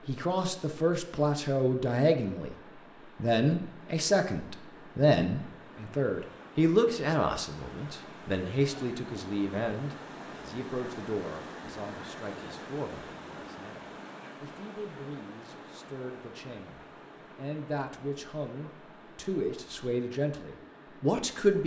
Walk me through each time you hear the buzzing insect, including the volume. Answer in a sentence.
The buzzing insect can't be heard in this clip.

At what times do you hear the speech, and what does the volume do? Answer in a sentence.
You can hear the speech briefly from 0.1 to 2.5 s; and from 3.1 to 21.6 s, getting quieter then louder.